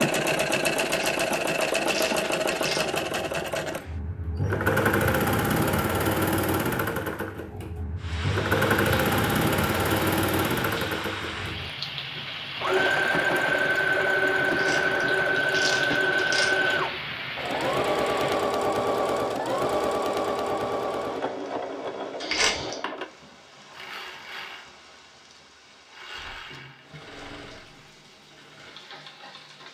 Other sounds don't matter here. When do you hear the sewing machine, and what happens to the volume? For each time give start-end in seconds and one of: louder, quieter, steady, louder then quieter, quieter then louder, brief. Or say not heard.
0.0-29.6 quieter.